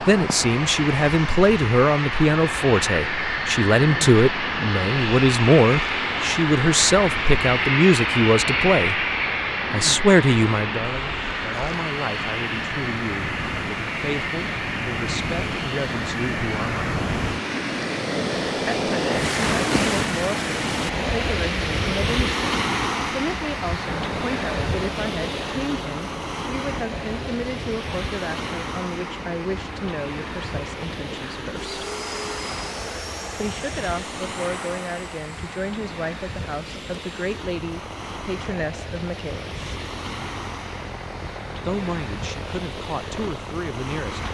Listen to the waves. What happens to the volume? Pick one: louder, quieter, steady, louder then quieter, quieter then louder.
louder then quieter.